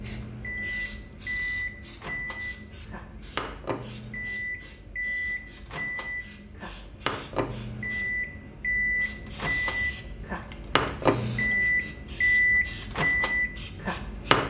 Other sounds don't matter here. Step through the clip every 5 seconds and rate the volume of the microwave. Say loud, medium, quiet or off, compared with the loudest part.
medium, medium, loud.